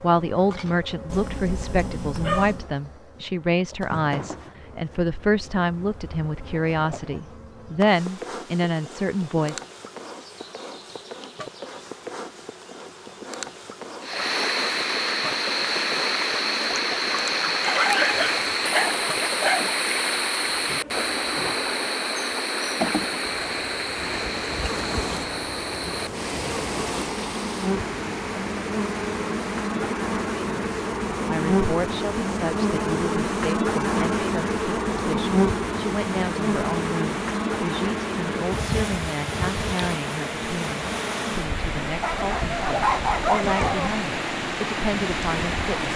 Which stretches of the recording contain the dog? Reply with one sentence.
You can hear the dog from 1.1 to 2.6 s, from 17.6 to 19.7 s and from 42.0 to 43.9 s.